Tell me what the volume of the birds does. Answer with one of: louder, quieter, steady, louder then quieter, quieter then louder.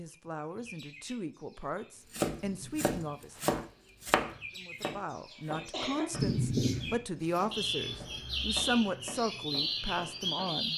louder.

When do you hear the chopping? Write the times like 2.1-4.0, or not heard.
2.1-10.7.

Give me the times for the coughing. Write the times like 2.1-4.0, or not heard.
5.3-6.1.